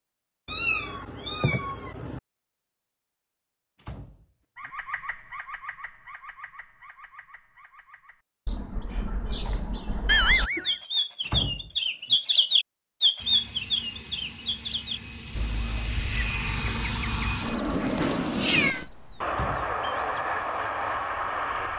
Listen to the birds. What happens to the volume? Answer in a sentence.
The volume of the birds goes up, then down.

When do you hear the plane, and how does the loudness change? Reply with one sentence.
The plane can be heard from 13.2 to 21.7 s, getting louder.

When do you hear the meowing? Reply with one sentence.
You can hear the meowing from 0.5 to 2.2 s, from 10.1 to 10.8 s and from 17.7 to 18.9 s.